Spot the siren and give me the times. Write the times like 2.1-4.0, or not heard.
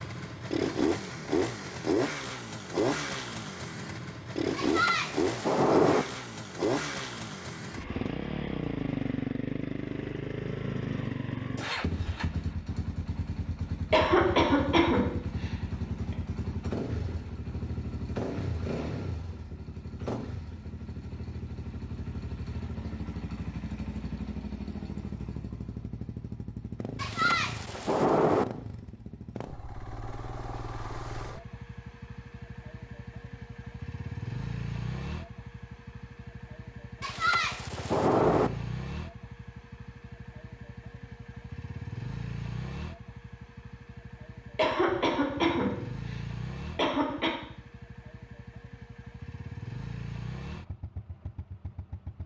not heard.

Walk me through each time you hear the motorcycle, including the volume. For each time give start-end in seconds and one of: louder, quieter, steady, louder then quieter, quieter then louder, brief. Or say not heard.
0.0-52.2 quieter.